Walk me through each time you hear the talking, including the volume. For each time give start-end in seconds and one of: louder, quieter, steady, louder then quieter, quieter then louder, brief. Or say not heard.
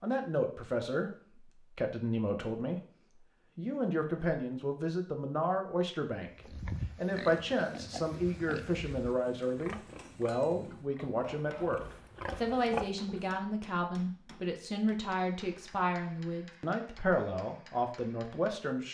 0.0-2.8 brief
3.5-18.8 steady.